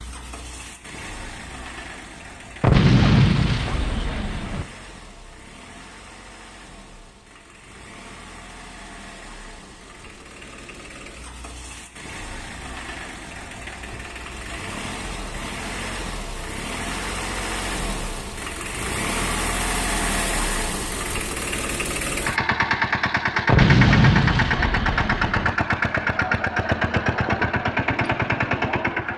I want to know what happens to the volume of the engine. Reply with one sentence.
The loudness of the engine goes up.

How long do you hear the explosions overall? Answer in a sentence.
The explosions can be heard for 4 seconds in total.